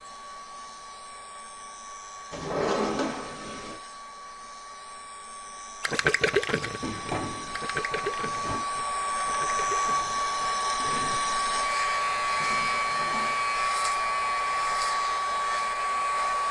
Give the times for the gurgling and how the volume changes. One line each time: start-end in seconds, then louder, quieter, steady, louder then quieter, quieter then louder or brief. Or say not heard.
5.8-11.2 quieter.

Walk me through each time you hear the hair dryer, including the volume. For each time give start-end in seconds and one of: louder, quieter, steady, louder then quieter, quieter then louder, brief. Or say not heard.
0.0-16.4 louder.